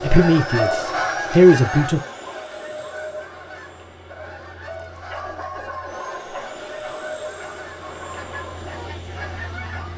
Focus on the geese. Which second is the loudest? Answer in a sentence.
The volume of the geese peaks at 1 second.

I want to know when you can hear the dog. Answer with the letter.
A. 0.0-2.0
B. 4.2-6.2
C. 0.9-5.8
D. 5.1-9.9
D.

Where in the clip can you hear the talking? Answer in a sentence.
You can hear the talking from 0.0 to 2.0 s.